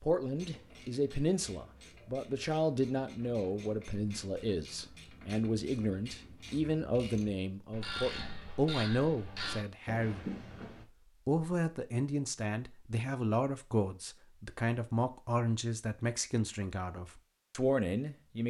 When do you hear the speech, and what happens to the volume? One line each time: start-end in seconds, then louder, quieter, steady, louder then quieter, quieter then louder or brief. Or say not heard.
0.0-10.3 steady
11.2-18.4 steady.